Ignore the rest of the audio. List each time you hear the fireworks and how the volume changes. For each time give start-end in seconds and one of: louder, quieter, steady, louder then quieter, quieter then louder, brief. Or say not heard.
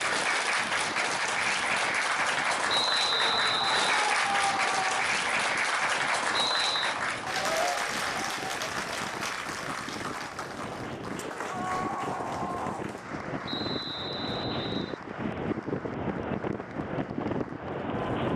not heard.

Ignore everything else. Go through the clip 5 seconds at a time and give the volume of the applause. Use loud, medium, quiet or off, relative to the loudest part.
loud, loud, quiet, quiet.